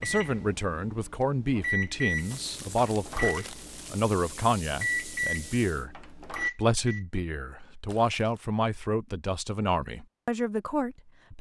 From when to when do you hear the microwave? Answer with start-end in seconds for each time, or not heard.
0.0-7.0.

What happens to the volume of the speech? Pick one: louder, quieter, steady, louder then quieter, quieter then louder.
steady.